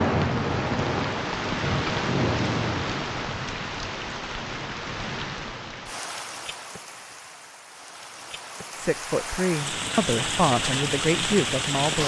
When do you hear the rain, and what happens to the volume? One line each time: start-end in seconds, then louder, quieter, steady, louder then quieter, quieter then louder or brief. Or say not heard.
0.0-12.0 quieter then louder.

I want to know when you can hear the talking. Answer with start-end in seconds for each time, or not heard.
8.8-12.0.